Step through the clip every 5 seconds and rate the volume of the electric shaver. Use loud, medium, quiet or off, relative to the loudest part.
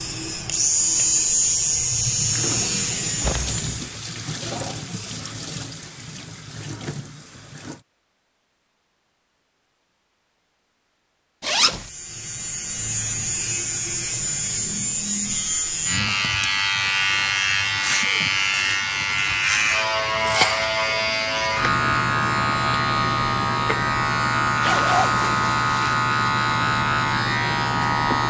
loud, off, medium, loud, loud, loud.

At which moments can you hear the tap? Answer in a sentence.
You can hear the tap from 2.3 to 7.8 s.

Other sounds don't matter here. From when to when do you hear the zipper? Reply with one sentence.
You can hear the zipper from 3.2 to 3.9 s, from 11.4 to 11.9 s and from 24.6 to 25.9 s.